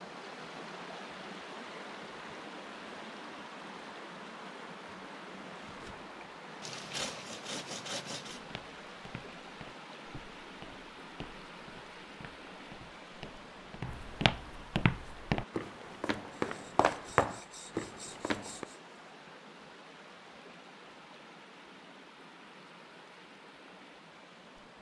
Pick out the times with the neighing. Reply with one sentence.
You can't hear the neighing here.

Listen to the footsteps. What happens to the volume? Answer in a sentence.
The volume of the footsteps goes up.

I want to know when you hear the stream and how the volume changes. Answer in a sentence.
The stream can be heard from 0.0 to 24.7 s, getting quieter.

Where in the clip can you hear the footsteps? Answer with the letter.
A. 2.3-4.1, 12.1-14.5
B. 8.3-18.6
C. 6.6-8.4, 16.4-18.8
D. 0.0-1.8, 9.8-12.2
B.